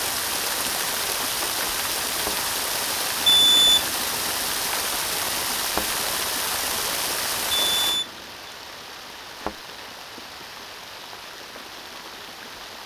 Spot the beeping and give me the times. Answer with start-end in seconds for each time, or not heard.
3.2-4.0, 7.5-8.3.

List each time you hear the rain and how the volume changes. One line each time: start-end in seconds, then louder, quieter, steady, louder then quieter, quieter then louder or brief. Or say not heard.
0.0-12.8 quieter.